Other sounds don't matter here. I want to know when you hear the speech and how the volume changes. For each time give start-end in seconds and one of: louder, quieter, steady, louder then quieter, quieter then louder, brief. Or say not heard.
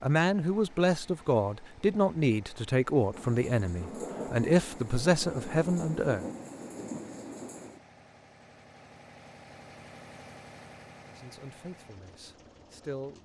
0.0-6.2 steady
11.1-13.2 brief.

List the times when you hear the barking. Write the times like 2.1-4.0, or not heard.
not heard.